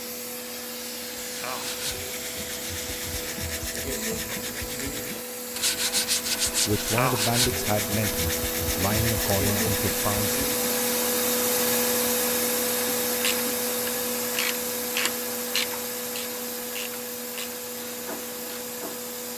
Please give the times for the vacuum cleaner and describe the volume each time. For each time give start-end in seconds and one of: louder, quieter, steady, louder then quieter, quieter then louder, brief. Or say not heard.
0.0-19.3 louder then quieter.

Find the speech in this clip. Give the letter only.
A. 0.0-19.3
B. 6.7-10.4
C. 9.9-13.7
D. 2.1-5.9
B.